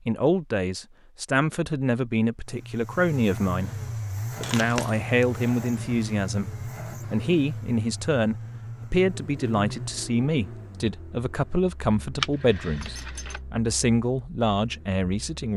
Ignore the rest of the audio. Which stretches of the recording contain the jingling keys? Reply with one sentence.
The jingling keys can be heard from 4.4 to 5.5 s and from 12.2 to 13.4 s.